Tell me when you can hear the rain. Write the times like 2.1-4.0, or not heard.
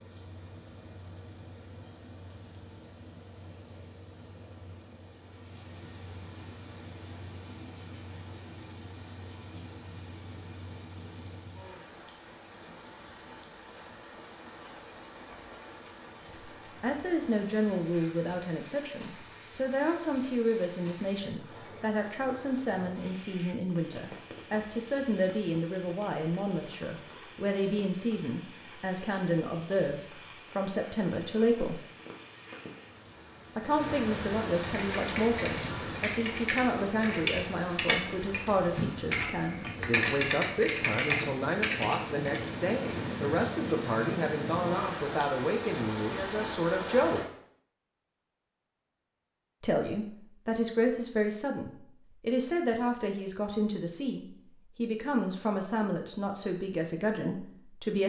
0.0-47.3.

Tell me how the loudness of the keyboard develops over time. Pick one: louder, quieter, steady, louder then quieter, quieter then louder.
louder.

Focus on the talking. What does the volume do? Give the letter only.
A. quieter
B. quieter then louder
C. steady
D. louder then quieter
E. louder
C.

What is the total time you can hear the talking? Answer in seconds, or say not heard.
37 s.